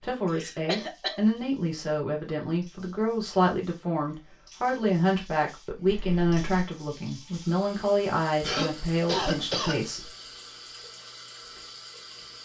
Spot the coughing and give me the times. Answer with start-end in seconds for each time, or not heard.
0.3-1.1, 5.8-6.4, 8.4-9.8.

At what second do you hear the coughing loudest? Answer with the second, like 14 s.
9 s.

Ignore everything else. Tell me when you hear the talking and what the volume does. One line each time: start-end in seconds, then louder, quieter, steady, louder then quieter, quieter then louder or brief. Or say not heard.
0.0-10.1 steady.